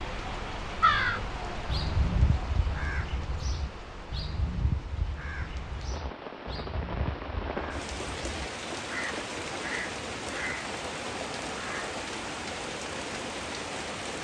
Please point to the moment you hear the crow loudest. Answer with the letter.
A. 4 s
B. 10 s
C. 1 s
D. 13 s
C.